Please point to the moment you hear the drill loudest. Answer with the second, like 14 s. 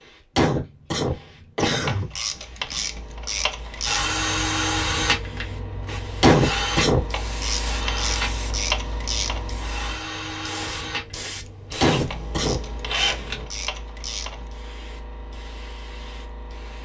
5 s.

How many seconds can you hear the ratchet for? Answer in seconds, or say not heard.
7 s.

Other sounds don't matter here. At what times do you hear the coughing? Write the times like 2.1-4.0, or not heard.
0.3-2.0, 6.2-7.0, 11.8-12.6.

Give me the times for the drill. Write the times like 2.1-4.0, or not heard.
3.9-13.4.